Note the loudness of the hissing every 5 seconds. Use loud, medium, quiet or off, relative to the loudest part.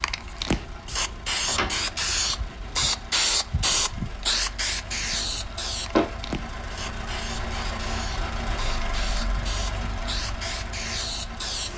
loud, medium, medium.